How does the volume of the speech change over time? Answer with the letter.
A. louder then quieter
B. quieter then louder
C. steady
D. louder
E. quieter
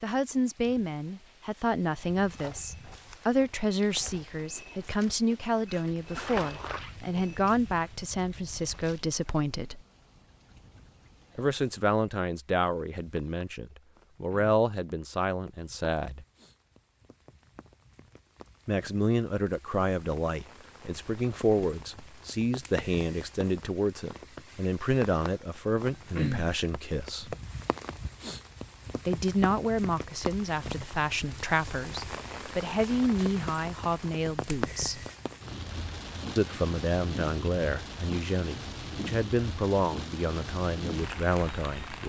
C.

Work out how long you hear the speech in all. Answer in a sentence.
You can hear the speech for 35 seconds altogether.